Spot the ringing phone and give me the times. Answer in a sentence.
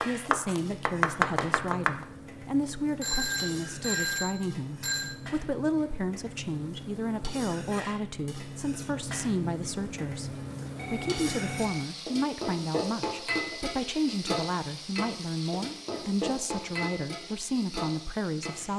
You can hear the ringing phone from 3.0 to 5.2 s and from 10.8 to 11.9 s.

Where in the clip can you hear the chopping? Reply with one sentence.
The chopping can be heard from 0.0 to 2.0 s.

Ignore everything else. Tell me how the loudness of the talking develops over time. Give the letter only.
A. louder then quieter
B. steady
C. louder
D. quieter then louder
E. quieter
B.